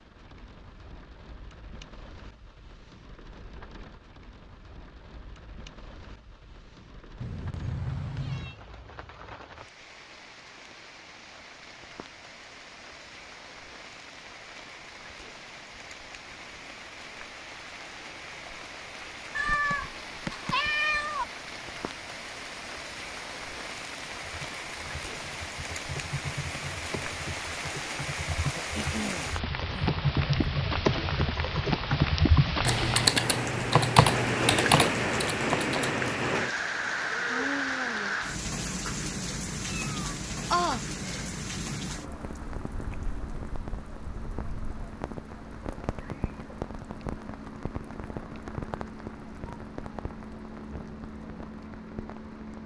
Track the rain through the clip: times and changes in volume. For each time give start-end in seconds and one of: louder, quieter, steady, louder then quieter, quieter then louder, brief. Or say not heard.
0.0-52.6 louder then quieter.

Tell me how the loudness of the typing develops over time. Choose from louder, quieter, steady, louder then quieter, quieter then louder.
louder.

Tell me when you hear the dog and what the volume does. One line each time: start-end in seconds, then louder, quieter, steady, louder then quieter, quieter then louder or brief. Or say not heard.
not heard.